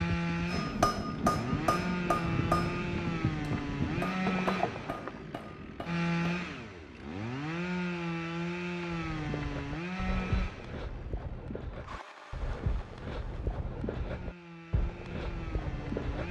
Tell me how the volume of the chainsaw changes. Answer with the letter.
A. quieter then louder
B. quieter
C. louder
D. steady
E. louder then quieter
B.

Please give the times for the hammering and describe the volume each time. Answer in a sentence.
You can hear the hammering from 0.5 to 6.6 s, getting quieter.